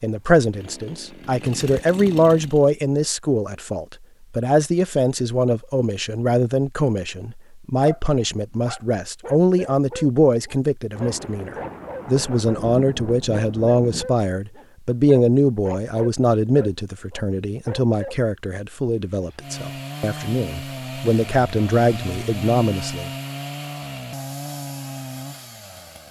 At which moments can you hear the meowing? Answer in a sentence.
You can't hear the meowing here.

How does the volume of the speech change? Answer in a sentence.
The volume of the speech stays about the same.